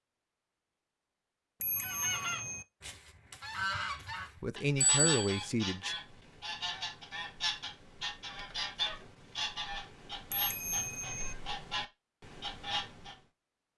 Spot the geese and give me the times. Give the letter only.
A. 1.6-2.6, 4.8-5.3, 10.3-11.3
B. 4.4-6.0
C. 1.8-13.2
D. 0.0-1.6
C.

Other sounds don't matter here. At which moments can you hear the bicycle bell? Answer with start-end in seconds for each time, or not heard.
1.6-2.6, 4.8-5.3, 10.3-11.3.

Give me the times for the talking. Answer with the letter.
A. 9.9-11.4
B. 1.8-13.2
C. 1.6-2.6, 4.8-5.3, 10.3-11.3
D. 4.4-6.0
D.